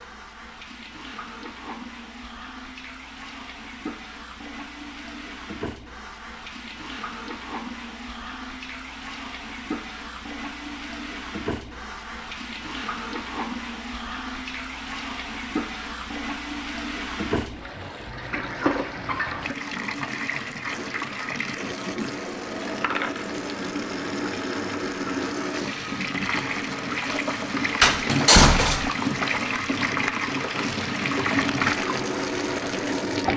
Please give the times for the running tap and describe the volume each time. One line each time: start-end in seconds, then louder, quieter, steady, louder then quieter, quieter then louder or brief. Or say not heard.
0.0-33.3 louder.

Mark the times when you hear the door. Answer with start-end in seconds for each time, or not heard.
27.8-28.9.